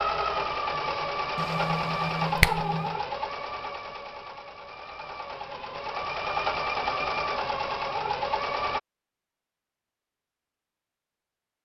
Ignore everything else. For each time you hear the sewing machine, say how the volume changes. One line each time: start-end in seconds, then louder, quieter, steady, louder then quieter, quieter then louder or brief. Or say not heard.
0.0-8.8 quieter then louder.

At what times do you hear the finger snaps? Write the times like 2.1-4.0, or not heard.
1.4-3.0.